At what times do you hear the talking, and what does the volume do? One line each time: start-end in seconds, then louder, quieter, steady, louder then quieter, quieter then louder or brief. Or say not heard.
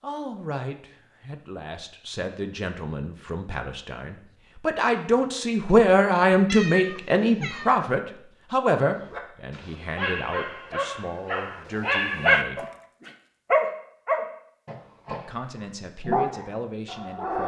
0.0-12.7 louder then quieter
15.1-17.4 brief.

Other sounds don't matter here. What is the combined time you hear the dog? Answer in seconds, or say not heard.
8 s.